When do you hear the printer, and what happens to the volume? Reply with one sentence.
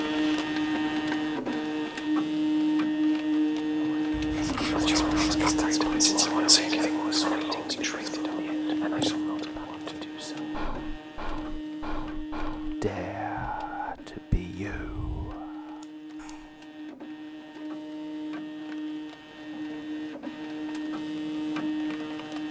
You can hear the printer from 0.0 to 22.4 s, getting quieter then louder.